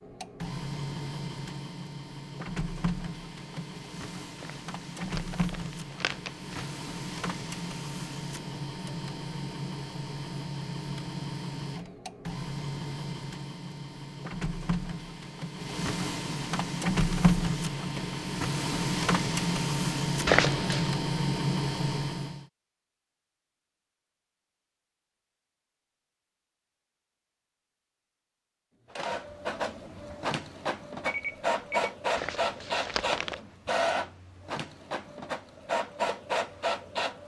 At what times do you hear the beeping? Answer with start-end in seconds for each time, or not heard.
31.1-31.9.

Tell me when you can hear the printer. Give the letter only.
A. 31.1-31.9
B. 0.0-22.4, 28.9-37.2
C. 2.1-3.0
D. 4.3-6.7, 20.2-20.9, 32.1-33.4
B.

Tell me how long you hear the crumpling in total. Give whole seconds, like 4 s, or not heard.
4 s.